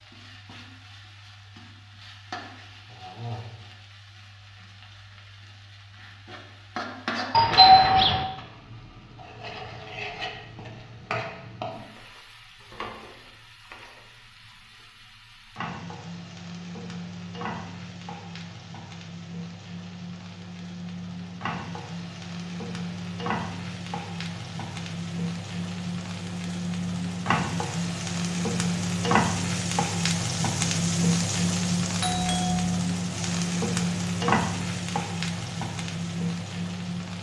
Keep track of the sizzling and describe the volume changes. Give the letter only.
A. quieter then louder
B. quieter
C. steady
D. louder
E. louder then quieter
D.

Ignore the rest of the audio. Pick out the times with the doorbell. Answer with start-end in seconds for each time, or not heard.
7.3-8.2, 32.0-32.6.